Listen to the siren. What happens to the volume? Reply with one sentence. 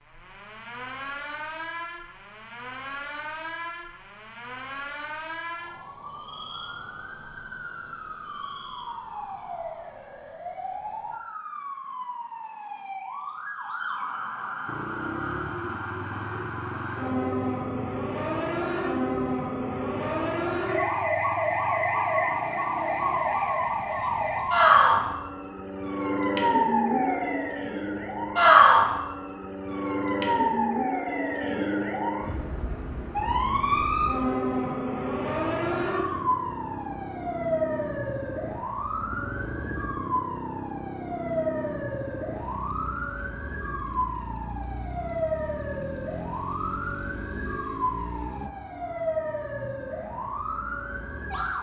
The volume of the siren goes up, then down.